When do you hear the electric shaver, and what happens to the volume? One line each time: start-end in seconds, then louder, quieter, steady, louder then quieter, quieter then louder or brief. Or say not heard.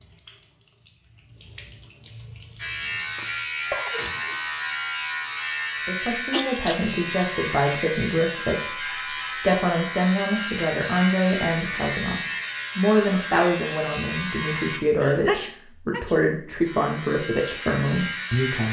2.5-14.8 steady
16.6-18.6 brief.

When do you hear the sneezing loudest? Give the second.
15 s.